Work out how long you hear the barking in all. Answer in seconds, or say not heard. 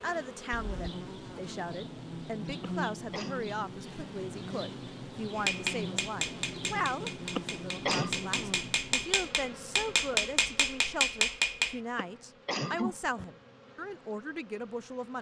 not heard.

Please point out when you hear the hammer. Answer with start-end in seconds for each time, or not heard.
5.3-11.8.